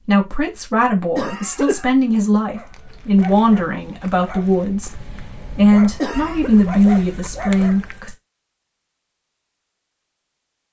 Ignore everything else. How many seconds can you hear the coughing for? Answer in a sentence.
The coughing can be heard for 2 seconds in total.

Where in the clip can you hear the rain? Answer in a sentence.
You can't hear the rain here.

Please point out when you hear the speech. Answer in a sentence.
The speech can be heard from 0.1 to 8.2 s.